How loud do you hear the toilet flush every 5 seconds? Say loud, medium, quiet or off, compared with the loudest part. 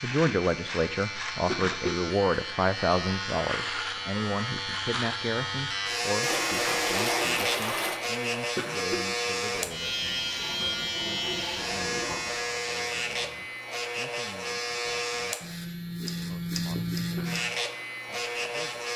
off, loud, medium, off.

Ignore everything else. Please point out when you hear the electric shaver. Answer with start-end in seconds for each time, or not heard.
0.0-18.9.